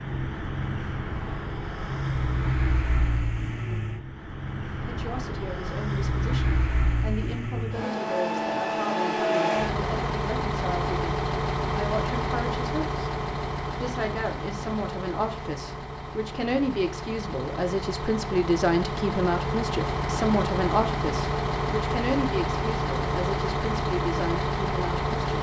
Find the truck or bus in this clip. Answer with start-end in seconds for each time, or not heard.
0.0-25.3.